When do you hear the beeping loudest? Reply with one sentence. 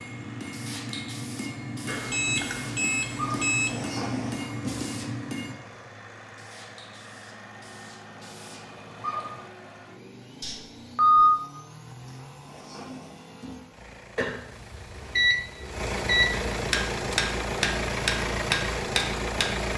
The volume of the beeping peaks at 11 seconds.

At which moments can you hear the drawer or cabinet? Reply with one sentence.
The drawer or cabinet can be heard from 3.5 to 4.8 s and from 12.2 to 13.9 s.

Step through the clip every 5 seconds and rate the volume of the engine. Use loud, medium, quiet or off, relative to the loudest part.
quiet, quiet, quiet, loud.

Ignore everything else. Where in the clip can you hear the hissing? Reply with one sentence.
You can hear the hissing from 0.0 to 9.5 s.